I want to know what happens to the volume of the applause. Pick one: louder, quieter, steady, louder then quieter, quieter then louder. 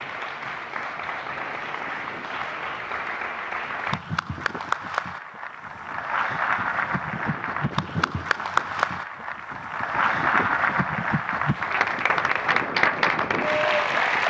louder.